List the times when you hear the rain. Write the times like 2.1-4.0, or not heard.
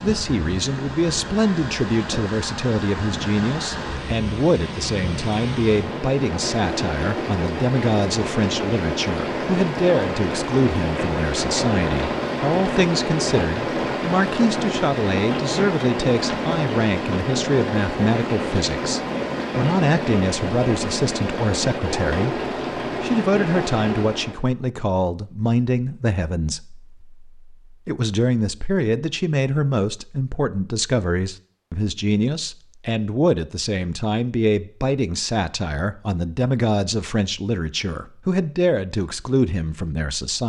0.0-24.4.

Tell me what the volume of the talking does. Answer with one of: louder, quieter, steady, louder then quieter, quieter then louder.
steady.